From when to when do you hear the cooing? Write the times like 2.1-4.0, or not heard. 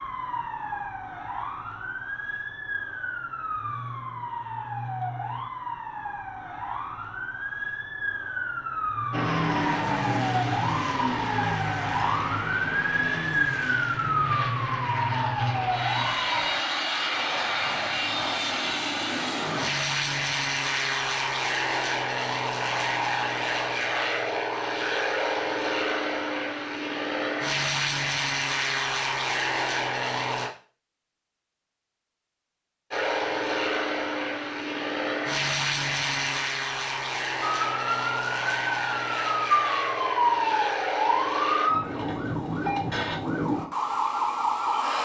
not heard.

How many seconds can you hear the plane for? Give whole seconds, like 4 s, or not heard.
30 s.